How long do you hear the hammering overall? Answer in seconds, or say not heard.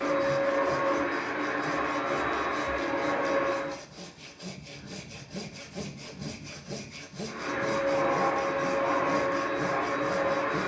not heard.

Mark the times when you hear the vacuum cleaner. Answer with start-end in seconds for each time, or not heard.
0.0-3.8, 7.2-10.6.